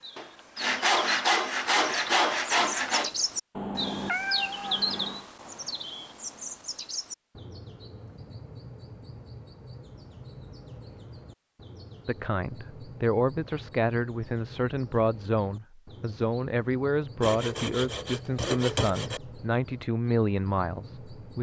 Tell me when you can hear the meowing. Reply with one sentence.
You can hear the meowing from 3.5 to 5.2 s.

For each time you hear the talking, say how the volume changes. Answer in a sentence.
You can hear the talking from 12.1 to 21.3 s, at a steady volume.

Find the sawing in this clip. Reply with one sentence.
You can hear the sawing from 0.1 to 3.1 s and from 17.2 to 19.2 s.